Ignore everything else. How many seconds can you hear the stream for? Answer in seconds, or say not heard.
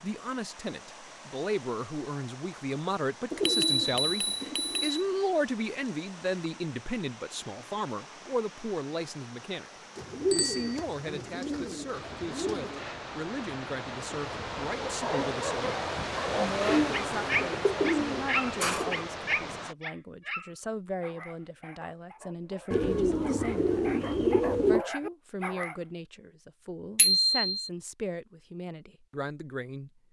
20 s.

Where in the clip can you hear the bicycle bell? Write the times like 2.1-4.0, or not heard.
3.4-5.0, 10.3-10.8, 26.9-27.7.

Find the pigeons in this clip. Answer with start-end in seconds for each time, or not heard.
3.3-4.9, 9.9-12.8, 16.6-19.1, 22.7-24.9.